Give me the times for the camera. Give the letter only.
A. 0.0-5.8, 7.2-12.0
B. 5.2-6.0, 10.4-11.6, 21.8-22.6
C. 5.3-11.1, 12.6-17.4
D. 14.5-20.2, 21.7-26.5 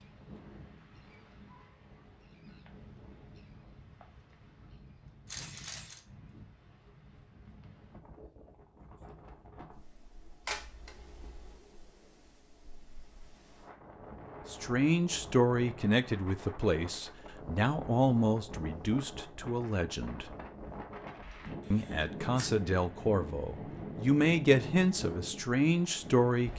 B.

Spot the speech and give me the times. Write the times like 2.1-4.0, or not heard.
14.5-20.2, 21.7-26.5.